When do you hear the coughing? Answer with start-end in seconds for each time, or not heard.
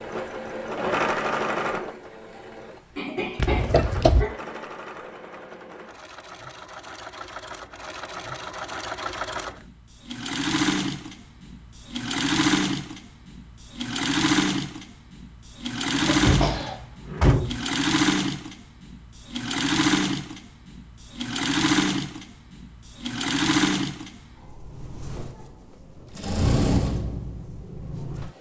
3.0-4.3, 15.9-16.8.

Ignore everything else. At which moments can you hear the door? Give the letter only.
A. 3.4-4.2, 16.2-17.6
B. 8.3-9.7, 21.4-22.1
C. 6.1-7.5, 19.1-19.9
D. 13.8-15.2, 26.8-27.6
A.